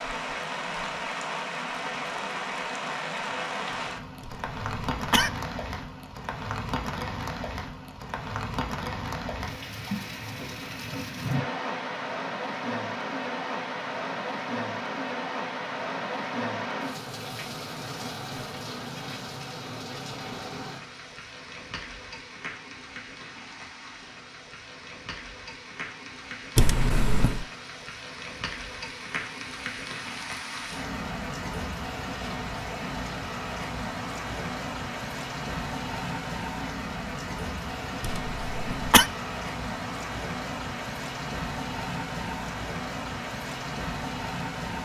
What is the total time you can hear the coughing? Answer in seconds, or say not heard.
3 s.